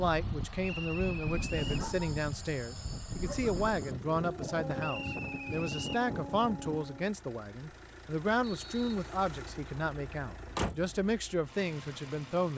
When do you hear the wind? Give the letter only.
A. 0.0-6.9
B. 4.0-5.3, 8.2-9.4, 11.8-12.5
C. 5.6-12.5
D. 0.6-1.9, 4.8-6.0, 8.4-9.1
A.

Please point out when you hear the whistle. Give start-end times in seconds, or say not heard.
0.6-1.9, 4.8-6.0, 8.4-9.1.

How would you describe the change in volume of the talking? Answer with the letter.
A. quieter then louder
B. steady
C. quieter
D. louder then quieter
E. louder
B.